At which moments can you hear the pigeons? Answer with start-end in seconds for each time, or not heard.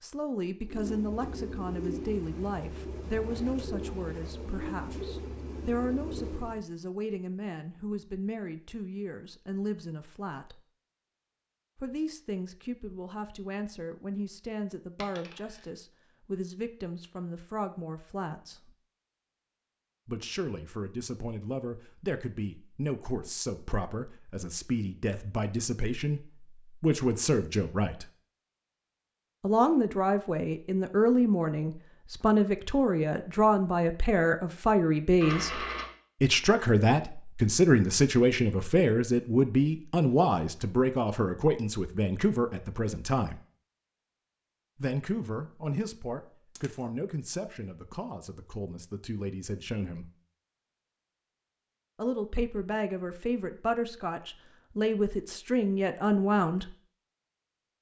0.7-6.7.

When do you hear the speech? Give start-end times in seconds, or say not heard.
0.0-10.6, 11.8-18.7, 20.1-28.1, 29.4-43.4, 44.8-50.1, 52.0-56.8.